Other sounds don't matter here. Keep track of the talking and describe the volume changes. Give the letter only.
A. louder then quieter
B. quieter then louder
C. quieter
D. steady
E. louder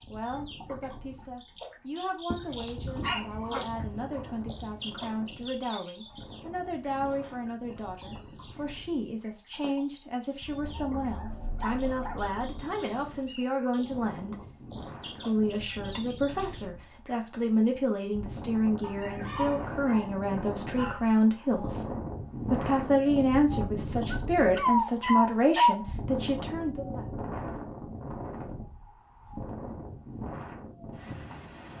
E.